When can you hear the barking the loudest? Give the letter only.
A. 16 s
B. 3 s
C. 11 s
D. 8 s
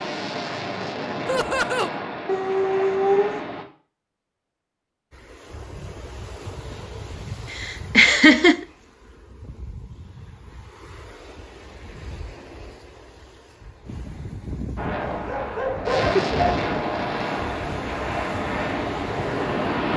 B.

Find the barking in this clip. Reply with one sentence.
You can hear the barking from 2.2 to 3.4 s and from 15.0 to 16.2 s.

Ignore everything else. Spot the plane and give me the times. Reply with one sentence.
You can hear the plane from 0.0 to 3.6 s and from 14.8 to 19.9 s.